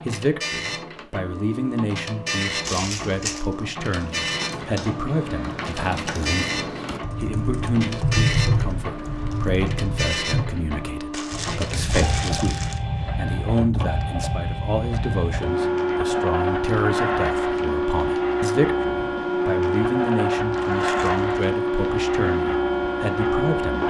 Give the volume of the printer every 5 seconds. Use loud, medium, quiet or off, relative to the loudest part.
medium, medium, medium, loud, loud.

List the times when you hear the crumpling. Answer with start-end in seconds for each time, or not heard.
2.6-3.5, 11.1-12.8, 20.6-21.4.